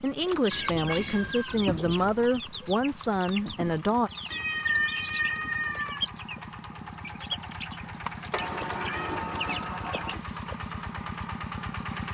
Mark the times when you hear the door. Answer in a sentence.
The door can be heard from 8.3 to 10.2 s.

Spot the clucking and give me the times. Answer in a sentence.
You can hear the clucking from 0.0 to 10.8 s.